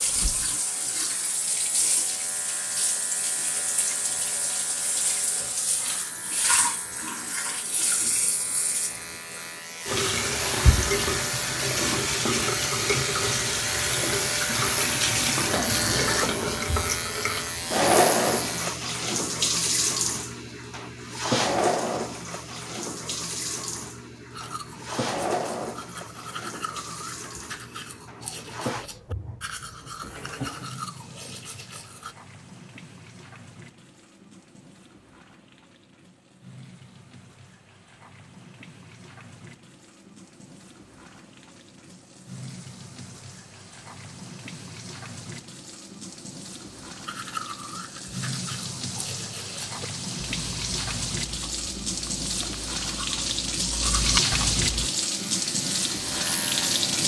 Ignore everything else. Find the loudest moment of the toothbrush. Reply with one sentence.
The loudest moment of the toothbrush is at 54 seconds.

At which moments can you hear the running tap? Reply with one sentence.
You can hear the running tap from 0.0 to 57.0 s.